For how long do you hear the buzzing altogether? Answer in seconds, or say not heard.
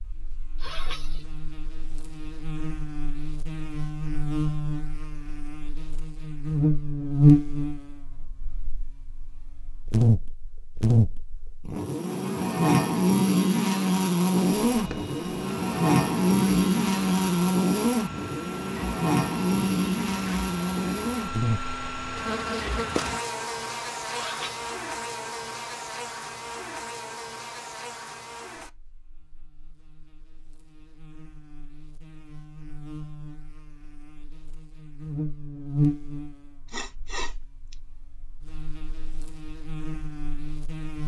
41 s.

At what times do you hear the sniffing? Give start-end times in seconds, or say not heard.
0.6-1.2, 24.1-24.7, 36.6-37.8.